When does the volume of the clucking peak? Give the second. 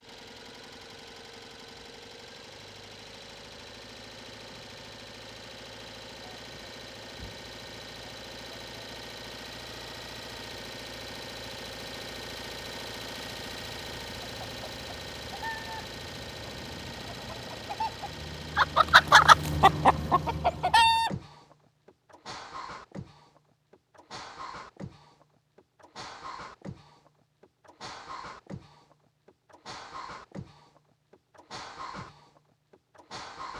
19 s.